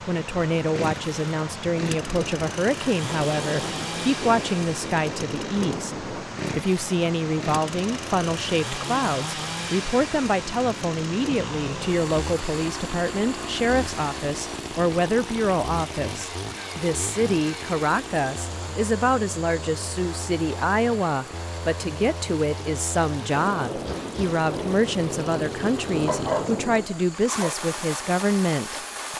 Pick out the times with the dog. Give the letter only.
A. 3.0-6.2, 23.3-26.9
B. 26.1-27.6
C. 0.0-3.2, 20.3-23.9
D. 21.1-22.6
B.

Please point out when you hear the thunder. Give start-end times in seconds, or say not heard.
3.0-6.2, 23.3-26.9.